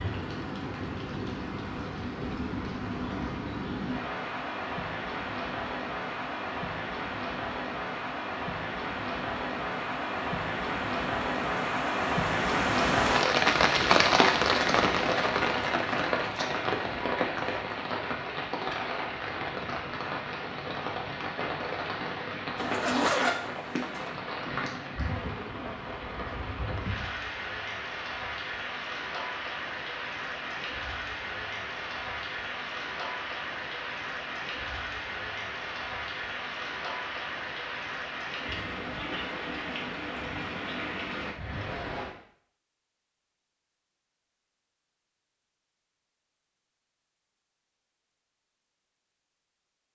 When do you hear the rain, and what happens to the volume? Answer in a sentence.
You can hear the rain from 0.0 to 42.1 s, getting louder then quieter.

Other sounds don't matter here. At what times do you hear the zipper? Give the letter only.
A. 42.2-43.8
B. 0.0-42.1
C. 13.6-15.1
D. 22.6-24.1
D.